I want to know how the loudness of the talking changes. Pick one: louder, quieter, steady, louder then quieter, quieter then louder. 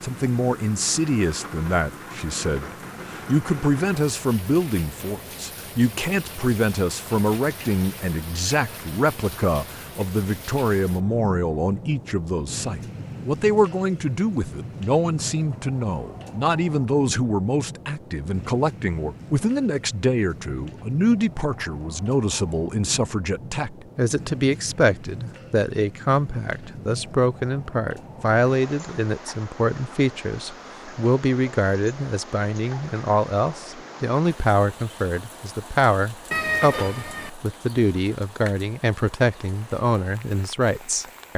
steady.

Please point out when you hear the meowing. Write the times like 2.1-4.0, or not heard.
36.3-37.3.